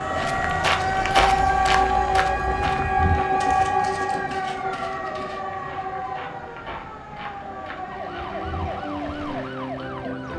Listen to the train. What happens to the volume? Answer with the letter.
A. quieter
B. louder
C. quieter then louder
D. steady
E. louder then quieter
A.